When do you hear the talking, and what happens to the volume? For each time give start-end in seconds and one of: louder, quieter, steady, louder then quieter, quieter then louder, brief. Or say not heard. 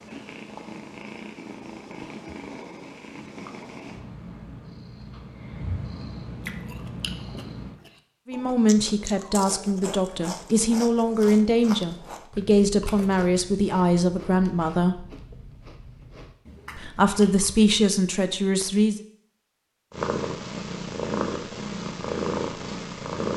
8.2-15.1 steady
16.8-19.0 brief.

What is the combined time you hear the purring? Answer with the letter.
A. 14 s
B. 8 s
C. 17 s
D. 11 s
D.